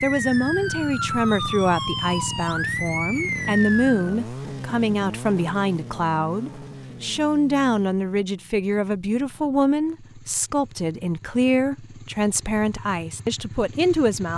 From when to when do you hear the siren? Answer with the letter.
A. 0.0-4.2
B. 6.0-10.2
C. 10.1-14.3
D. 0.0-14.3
A.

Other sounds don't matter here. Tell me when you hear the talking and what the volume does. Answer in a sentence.
You can hear the talking from 0.0 to 14.3 s, at a steady volume.